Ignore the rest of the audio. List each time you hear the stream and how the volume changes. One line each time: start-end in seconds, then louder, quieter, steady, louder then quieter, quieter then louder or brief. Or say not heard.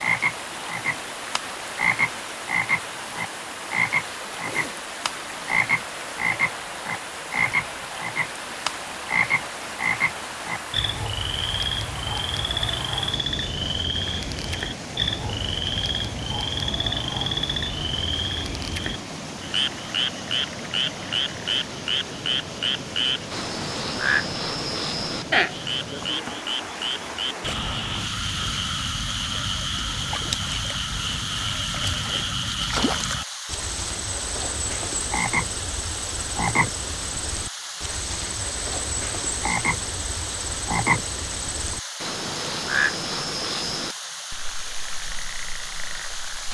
0.0-46.4 steady.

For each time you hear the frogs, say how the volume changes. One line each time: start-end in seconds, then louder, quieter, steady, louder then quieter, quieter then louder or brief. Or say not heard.
0.0-46.4 steady.